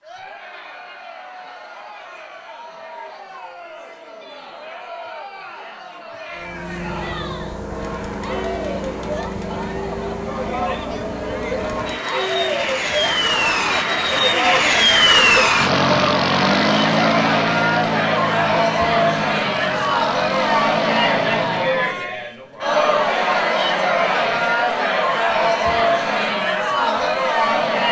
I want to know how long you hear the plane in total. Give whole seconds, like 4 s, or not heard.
16 s.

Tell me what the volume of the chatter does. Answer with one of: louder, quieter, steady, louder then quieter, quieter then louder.
louder.